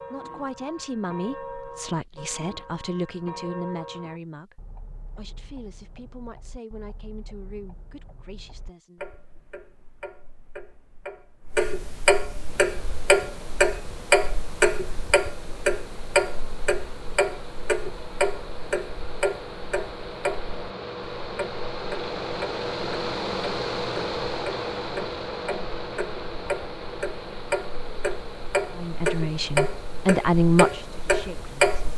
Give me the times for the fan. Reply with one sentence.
The fan can be heard from 12.4 to 31.9 s.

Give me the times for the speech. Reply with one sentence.
The speech can be heard from 0.0 to 9.1 s and from 28.8 to 31.8 s.